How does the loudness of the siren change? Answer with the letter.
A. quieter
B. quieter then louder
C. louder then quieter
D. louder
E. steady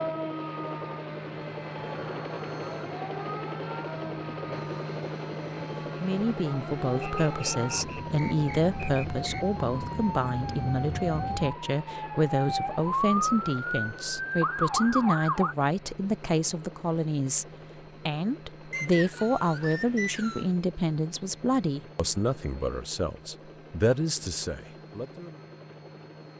D.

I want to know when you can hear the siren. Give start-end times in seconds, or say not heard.
0.0-15.6.